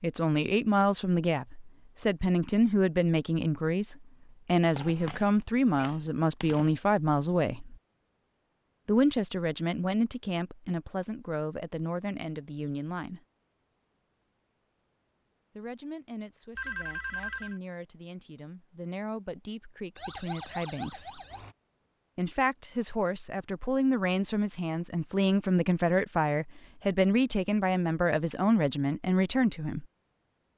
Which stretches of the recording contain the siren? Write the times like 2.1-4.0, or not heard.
19.9-21.6.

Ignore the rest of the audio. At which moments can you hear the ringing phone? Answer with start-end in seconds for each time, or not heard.
4.8-6.8, 16.6-17.6.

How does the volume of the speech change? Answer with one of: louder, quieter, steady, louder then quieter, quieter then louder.
quieter then louder.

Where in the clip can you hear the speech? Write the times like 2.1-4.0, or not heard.
0.0-7.8, 8.8-13.2, 15.6-21.2, 22.1-29.9.